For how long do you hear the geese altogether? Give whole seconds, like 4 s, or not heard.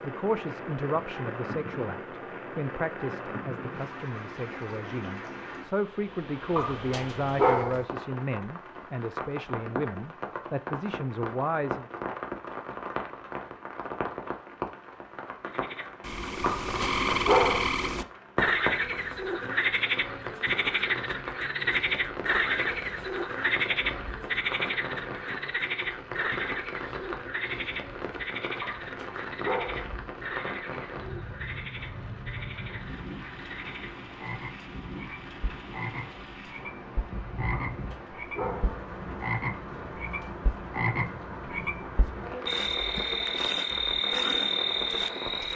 not heard.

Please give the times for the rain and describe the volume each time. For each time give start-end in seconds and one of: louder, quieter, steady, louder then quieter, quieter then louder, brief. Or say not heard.
0.0-45.5 steady.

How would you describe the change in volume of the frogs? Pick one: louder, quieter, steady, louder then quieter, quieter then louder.
quieter then louder.